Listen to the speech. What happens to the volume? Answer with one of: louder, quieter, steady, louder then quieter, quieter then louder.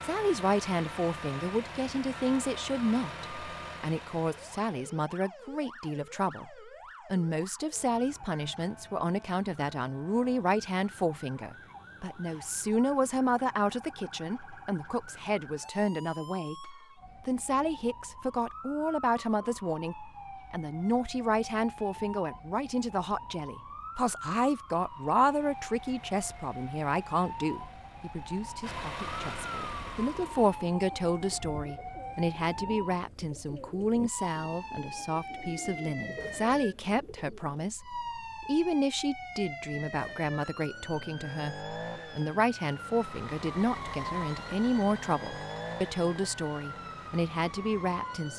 steady.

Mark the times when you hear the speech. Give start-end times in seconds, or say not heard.
0.0-48.3.